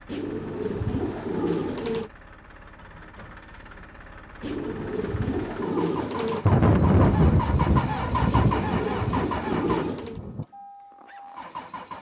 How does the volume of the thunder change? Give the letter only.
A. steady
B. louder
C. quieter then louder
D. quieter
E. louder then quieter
D.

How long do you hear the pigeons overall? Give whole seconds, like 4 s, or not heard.
6 s.